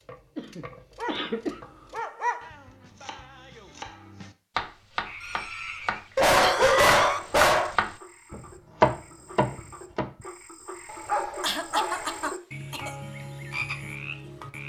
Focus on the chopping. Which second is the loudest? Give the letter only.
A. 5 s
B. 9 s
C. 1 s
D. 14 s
B.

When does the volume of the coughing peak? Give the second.
7 s.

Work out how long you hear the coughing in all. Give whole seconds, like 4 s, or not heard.
5 s.